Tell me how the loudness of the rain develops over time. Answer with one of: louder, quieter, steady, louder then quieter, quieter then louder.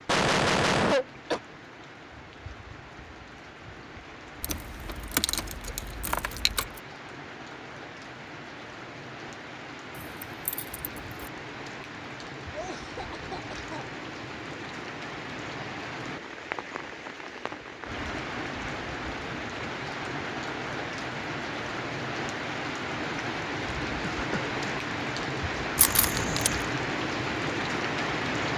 louder.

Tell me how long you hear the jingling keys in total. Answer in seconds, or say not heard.
5 s.